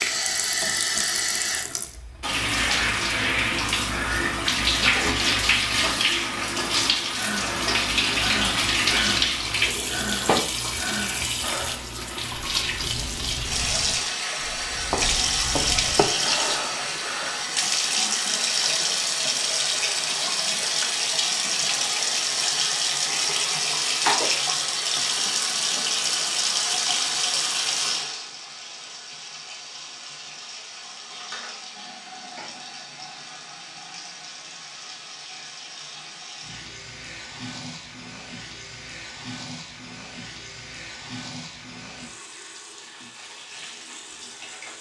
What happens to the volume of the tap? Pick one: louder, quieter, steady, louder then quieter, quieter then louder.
quieter.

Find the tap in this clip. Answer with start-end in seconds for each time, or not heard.
0.0-44.7.